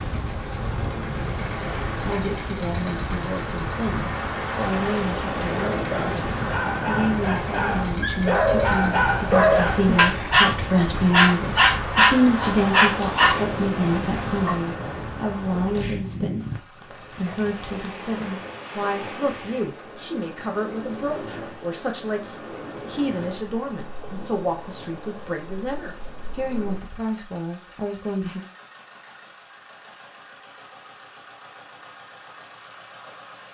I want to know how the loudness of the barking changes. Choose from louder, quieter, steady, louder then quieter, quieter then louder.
louder.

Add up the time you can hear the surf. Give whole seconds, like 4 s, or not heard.
27 s.